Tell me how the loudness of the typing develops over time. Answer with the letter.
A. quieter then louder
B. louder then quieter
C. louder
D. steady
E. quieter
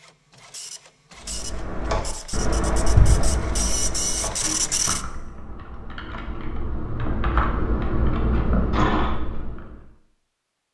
A.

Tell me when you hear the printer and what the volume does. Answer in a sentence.
You can hear the printer from 0.0 to 5.0 s, getting louder.